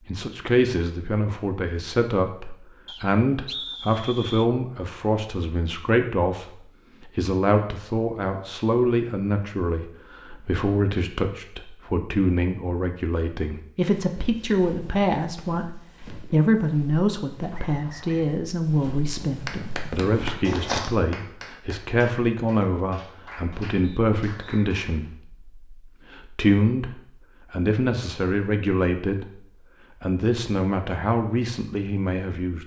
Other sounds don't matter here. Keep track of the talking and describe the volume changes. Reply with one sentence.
The loudness of the talking stays about the same.